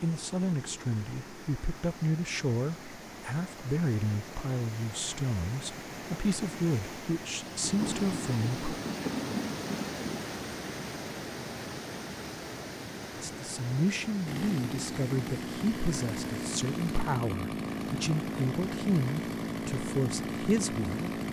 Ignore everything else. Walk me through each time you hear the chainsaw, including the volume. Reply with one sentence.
You can hear the chainsaw from 14.2 to 21.2 s, at a steady volume.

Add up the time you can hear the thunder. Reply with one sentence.
You can hear the thunder for 3 seconds altogether.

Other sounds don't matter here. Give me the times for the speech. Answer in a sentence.
The speech can be heard from 0.0 to 8.7 s and from 13.2 to 21.2 s.